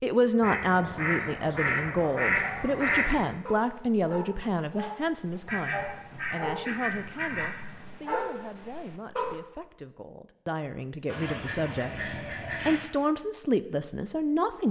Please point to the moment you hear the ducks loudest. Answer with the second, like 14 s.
2 s.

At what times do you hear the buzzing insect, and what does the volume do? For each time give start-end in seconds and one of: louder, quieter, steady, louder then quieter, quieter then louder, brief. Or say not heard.
not heard.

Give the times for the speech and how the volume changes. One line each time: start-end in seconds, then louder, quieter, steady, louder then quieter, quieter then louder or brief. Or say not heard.
0.0-14.6 quieter then louder.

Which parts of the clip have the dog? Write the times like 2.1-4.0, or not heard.
1.1-9.4.